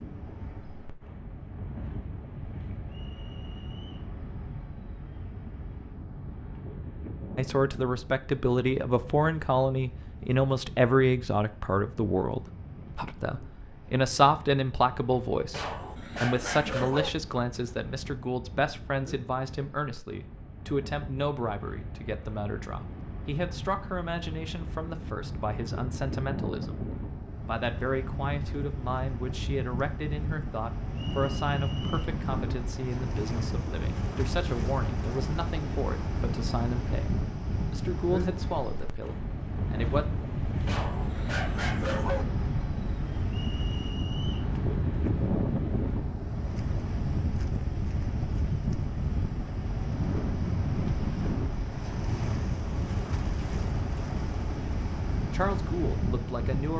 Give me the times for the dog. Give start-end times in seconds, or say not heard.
15.5-17.1, 40.6-42.2.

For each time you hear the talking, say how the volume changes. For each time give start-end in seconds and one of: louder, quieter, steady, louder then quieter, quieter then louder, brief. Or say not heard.
7.3-26.8 quieter
27.4-40.0 steady
55.3-56.7 brief.